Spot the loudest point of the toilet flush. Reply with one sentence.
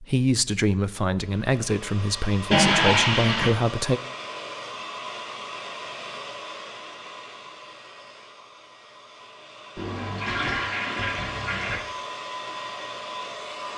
The volume of the toilet flush peaks at 3 seconds.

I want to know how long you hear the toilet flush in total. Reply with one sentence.
You can hear the toilet flush for 3 seconds altogether.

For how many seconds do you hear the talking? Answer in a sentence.
The talking can be heard for 4 seconds in total.